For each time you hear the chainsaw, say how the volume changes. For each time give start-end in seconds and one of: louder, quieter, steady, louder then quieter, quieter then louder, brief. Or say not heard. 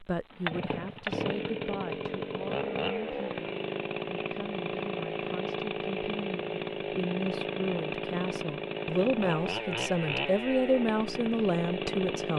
0.1-12.3 steady.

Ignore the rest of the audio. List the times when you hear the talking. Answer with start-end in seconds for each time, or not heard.
0.0-12.3.